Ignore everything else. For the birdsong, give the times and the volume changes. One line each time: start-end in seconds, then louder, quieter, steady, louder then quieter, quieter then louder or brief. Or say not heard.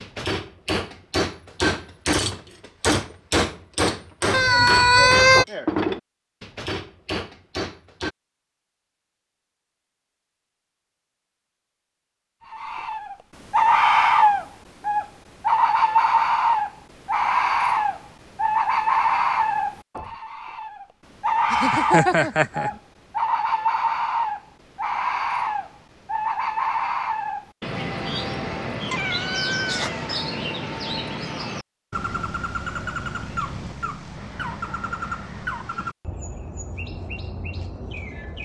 12.5-38.4 quieter.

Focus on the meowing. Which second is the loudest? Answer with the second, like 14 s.
5 s.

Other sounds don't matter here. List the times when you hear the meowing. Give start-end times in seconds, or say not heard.
4.3-5.5, 21.5-22.7, 28.9-30.3.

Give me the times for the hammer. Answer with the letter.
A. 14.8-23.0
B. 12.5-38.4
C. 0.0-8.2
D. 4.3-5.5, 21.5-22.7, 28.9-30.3
C.